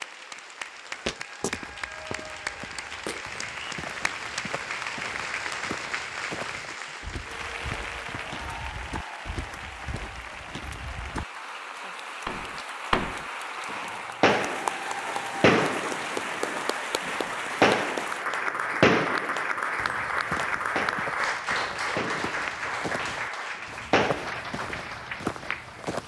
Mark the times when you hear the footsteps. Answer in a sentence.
The footsteps can be heard from 0.9 to 11.2 s and from 19.8 to 26.0 s.